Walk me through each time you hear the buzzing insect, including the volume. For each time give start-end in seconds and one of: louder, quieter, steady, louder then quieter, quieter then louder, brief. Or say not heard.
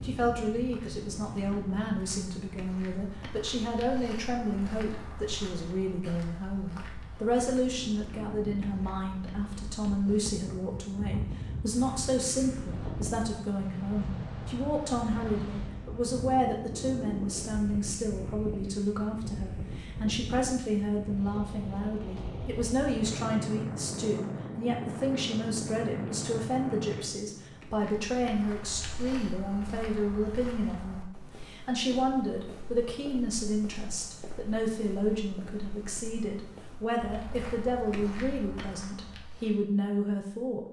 not heard.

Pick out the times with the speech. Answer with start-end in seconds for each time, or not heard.
0.0-40.6.